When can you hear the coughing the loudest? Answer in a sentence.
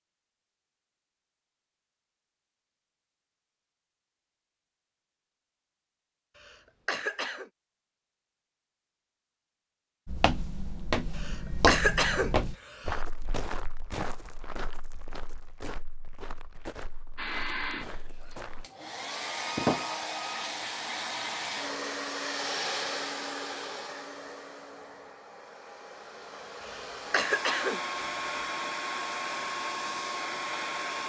The volume of the coughing peaks at 12 seconds.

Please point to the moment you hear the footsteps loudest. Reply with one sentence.
The loudest moment of the footsteps is at 12 seconds.